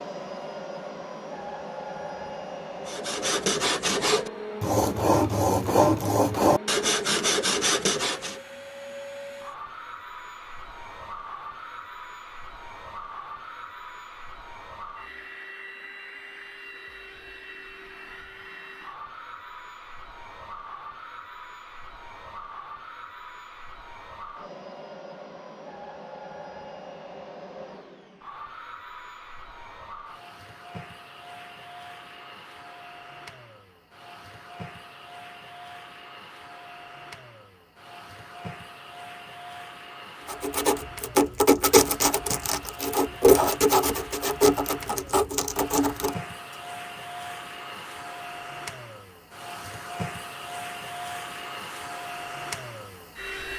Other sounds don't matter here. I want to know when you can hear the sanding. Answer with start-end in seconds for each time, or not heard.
2.9-8.4, 40.2-46.5.